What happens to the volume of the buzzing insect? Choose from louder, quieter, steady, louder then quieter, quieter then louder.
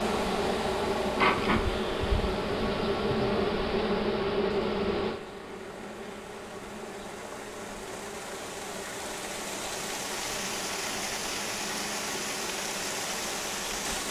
quieter.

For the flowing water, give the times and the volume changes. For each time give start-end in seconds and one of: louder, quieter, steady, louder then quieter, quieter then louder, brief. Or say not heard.
0.0-14.0 quieter then louder.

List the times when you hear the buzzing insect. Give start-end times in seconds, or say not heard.
0.0-14.0.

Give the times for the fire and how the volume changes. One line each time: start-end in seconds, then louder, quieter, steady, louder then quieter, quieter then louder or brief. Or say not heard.
not heard.